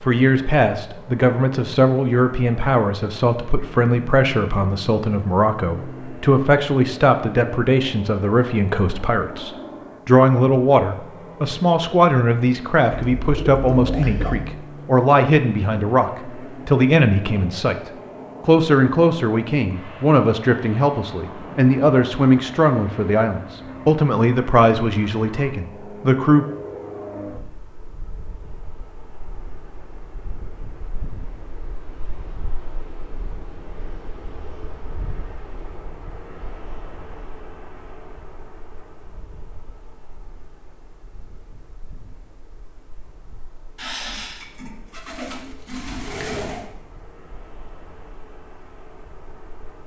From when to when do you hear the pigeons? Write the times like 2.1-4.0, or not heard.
12.9-14.4, 43.8-46.6.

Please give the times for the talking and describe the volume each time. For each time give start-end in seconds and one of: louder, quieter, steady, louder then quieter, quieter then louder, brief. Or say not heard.
0.0-26.4 steady.